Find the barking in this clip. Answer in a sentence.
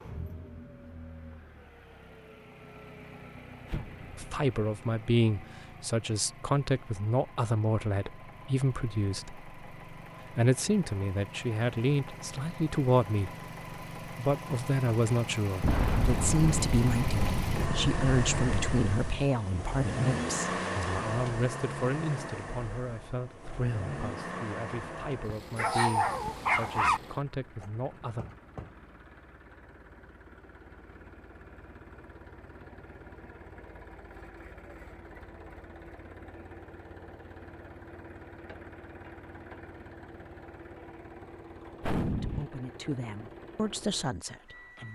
The barking can be heard from 25.6 to 27.0 s.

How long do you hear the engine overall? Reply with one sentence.
The engine can be heard for 45 seconds in total.